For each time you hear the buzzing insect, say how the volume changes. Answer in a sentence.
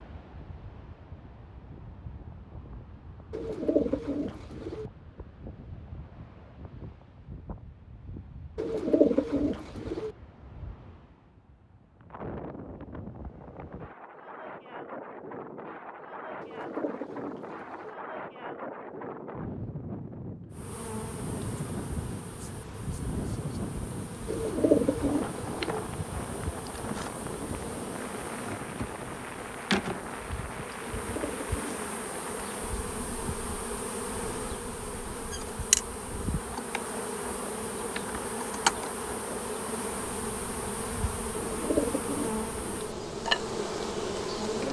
You can hear the buzzing insect from 20.5 to 44.6 s, getting louder.